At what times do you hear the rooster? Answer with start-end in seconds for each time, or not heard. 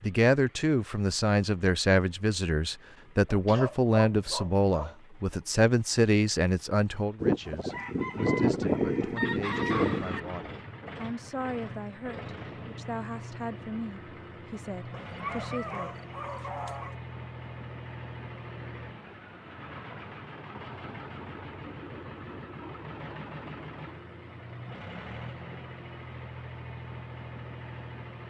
7.2-10.2.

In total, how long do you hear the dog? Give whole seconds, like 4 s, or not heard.
4 s.